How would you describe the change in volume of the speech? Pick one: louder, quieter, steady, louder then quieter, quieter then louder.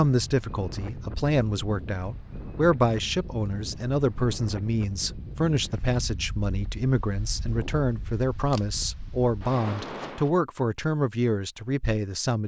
steady.